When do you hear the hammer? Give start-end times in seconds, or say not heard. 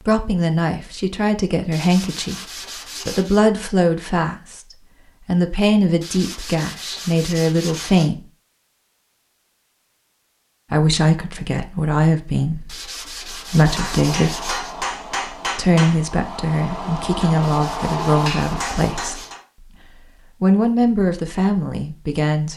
13.4-19.4.